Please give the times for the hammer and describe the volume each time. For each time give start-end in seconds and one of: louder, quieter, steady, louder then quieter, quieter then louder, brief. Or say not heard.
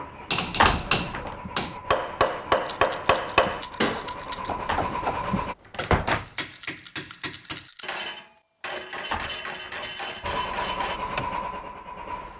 0.3-11.0 quieter.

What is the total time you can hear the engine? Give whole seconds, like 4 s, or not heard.
8 s.